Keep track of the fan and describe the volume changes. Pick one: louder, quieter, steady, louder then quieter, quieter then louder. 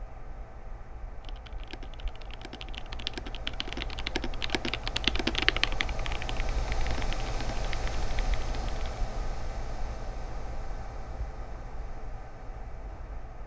louder then quieter.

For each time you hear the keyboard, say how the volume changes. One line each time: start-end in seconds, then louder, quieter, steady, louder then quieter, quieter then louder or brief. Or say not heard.
1.2-9.0 louder then quieter.